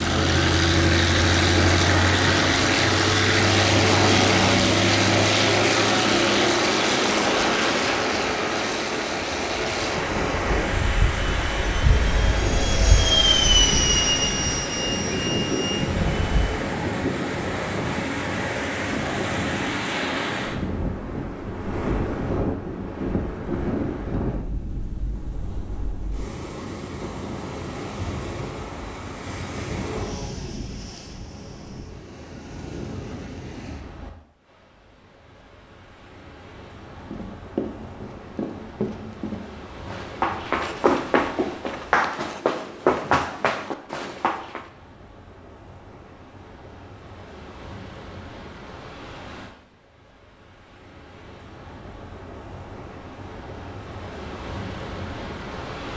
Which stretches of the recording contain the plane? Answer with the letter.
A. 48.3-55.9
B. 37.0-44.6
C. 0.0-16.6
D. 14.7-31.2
C.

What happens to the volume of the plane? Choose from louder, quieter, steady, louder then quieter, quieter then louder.
quieter then louder.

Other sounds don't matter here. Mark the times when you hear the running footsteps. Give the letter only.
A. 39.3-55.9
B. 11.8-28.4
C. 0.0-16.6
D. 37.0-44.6
D.